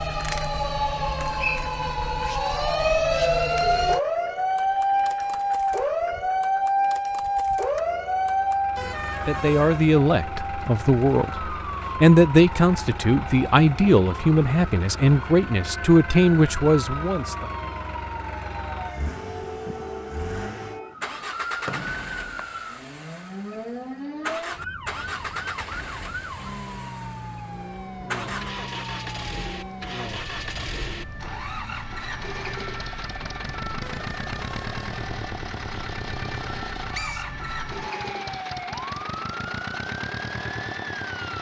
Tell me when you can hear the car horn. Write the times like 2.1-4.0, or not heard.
8.8-9.8, 33.8-34.9.